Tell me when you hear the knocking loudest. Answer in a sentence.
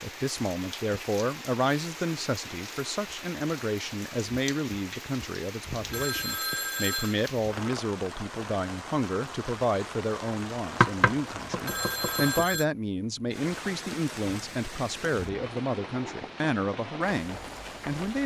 The volume of the knocking peaks at 11 seconds.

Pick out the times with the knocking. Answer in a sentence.
You can hear the knocking from 10.8 to 12.6 s.